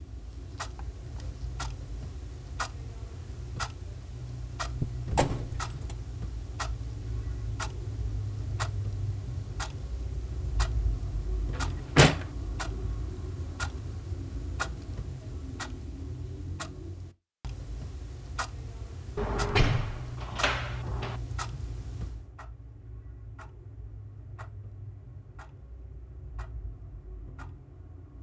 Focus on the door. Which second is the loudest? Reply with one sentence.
The volume of the door peaks at 12 seconds.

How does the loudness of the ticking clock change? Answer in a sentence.
The loudness of the ticking clock goes down.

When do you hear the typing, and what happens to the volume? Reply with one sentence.
The typing can't be heard in this clip.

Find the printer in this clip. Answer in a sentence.
You can't hear the printer here.